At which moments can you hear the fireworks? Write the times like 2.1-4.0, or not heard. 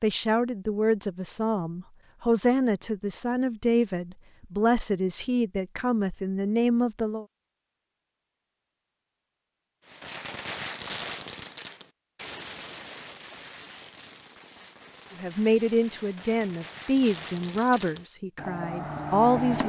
9.8-19.6.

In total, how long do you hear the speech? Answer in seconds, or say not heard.
12 s.